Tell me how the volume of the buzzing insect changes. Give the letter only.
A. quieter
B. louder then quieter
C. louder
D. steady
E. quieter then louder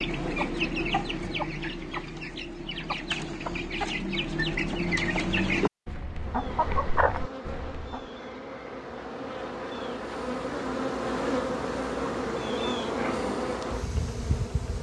C.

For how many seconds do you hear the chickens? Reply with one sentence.
The chickens can be heard for 8 seconds in total.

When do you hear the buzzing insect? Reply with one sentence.
You can hear the buzzing insect from 6.2 to 14.7 s.